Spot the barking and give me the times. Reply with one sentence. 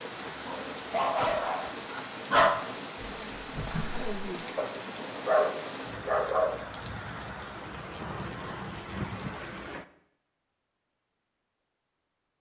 You can hear the barking from 0.5 to 6.6 s.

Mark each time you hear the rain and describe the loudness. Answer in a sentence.
You can hear the rain from 0.0 to 9.8 s, at a steady volume.